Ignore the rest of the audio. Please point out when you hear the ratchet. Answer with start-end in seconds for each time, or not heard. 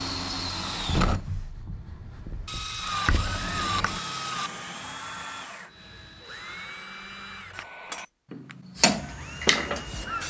2.5-4.5.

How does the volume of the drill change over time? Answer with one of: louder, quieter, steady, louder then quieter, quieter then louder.
quieter.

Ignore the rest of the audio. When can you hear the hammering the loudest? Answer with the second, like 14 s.
9 s.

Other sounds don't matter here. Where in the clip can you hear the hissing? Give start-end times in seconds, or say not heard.
8.8-10.2.